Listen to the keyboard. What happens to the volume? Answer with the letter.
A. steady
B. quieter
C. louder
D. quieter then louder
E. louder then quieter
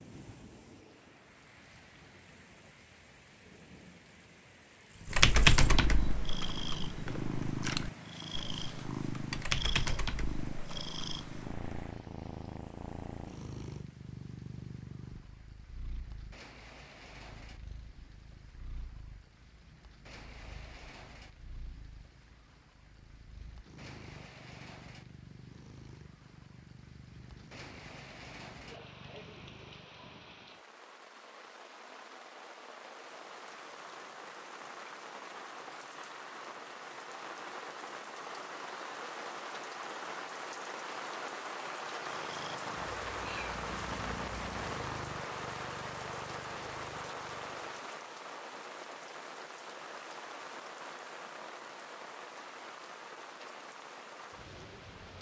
D.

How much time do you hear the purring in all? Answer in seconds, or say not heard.
31 s.